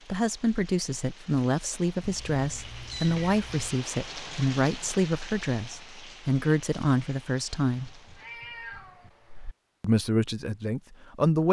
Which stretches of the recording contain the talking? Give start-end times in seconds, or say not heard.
0.1-7.9, 9.8-11.4.